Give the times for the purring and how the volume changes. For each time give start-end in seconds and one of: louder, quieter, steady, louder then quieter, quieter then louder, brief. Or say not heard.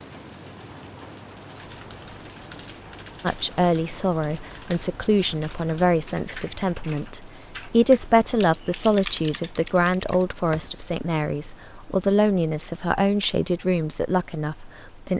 not heard.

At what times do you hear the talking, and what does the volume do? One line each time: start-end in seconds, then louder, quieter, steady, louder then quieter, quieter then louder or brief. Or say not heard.
3.2-15.1 steady.